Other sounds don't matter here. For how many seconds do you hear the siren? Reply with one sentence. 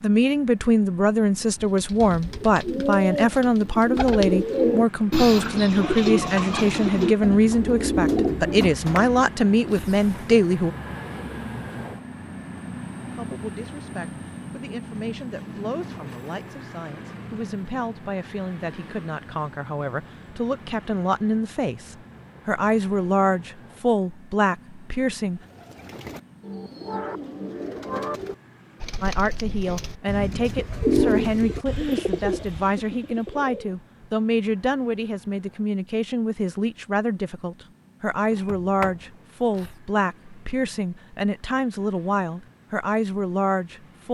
The siren can't be heard in this clip.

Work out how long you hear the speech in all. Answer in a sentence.
The speech can be heard for 38 seconds in total.